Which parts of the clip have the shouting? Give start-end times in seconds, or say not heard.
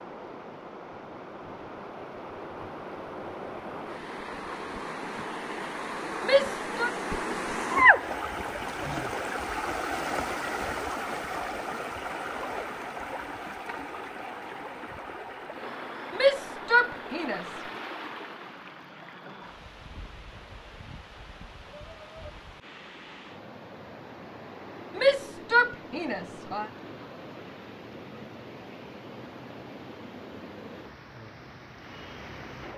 6.2-6.9, 16.1-17.4, 24.9-26.7.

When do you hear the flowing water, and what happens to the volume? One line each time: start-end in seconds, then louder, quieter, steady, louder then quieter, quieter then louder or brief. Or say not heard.
0.0-32.7 louder then quieter.